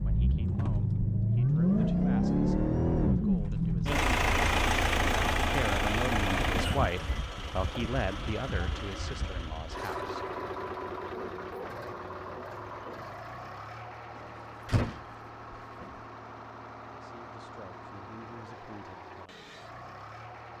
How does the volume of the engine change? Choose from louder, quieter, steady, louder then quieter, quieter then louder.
quieter.